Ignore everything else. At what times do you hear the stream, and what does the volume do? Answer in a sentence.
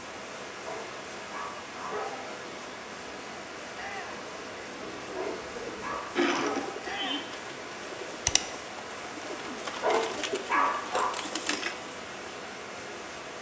The stream can be heard from 0.0 to 13.3 s, at a steady volume.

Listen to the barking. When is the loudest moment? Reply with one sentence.
The volume of the barking peaks at 11 seconds.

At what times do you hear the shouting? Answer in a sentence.
You can hear the shouting from 3.7 to 4.2 s and from 6.8 to 7.3 s.